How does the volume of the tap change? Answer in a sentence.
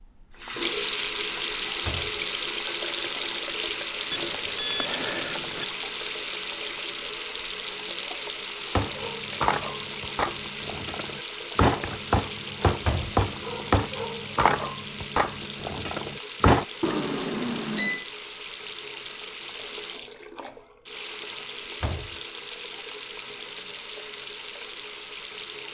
The volume of the tap goes down.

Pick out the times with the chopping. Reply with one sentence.
You can hear the chopping from 8.8 to 16.6 s.